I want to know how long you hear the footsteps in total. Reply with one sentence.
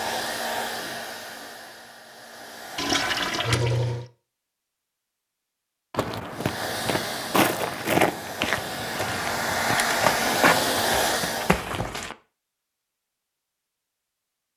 You can hear the footsteps for 6 seconds altogether.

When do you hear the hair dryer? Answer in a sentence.
The hair dryer can be heard from 0.0 to 3.5 s and from 6.3 to 11.7 s.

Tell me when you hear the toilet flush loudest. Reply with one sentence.
The volume of the toilet flush peaks at 3 seconds.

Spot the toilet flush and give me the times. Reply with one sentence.
The toilet flush can be heard from 2.8 to 4.0 s and from 10.2 to 11.1 s.